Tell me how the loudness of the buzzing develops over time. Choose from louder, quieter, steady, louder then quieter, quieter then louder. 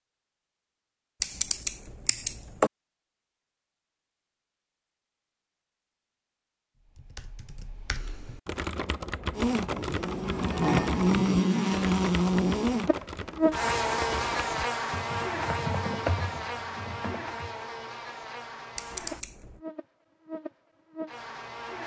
quieter.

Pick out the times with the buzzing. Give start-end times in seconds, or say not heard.
9.3-21.8.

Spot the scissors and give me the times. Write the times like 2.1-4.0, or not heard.
1.2-2.7, 18.8-19.6.